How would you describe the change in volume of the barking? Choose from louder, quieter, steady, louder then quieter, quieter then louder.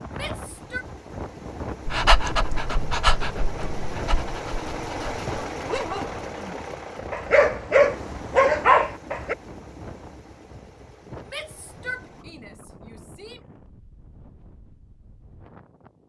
quieter then louder.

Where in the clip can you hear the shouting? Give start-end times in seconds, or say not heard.
0.1-0.8, 11.2-13.4.